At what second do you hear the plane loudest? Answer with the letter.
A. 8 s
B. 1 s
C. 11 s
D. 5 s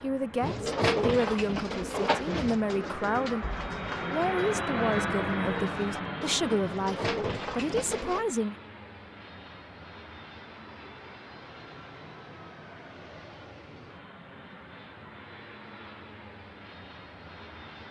D.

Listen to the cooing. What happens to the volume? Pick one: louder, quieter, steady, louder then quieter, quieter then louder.
quieter then louder.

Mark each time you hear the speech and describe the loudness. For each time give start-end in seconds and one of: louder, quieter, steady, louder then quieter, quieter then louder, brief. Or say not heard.
0.0-8.6 steady.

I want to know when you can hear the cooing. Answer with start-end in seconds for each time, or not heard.
0.3-8.2.